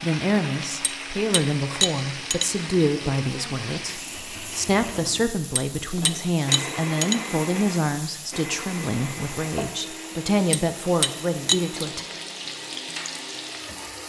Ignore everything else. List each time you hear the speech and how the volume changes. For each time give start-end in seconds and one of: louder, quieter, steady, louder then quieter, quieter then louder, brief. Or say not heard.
0.0-12.1 steady.